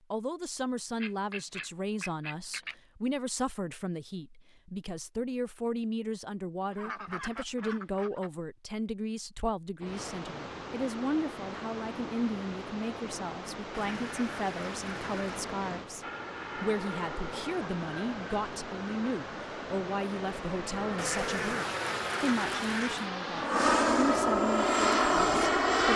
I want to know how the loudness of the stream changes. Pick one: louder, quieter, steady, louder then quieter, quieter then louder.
steady.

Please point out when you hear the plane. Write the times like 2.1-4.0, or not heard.
16.0-25.9.